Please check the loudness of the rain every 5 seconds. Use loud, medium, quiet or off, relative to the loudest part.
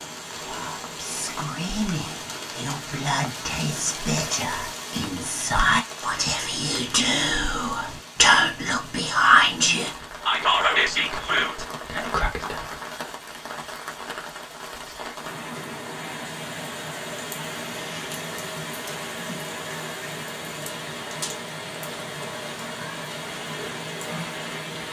loud, medium, loud, loud, loud.